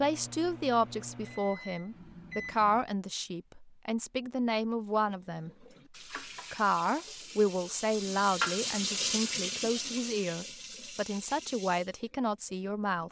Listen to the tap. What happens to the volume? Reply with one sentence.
The loudness of the tap goes up, then down.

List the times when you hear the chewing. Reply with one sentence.
You can't hear the chewing here.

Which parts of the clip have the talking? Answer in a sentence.
You can hear the talking from 0.0 to 5.5 s and from 6.5 to 13.0 s.